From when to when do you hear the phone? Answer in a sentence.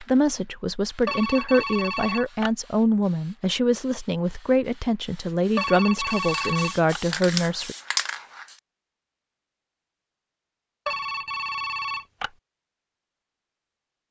The phone can be heard from 1.1 to 2.5 s, from 5.5 to 7.0 s and from 10.8 to 12.3 s.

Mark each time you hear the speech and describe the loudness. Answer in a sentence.
You can hear the speech from 0.0 to 7.8 s, at a steady volume.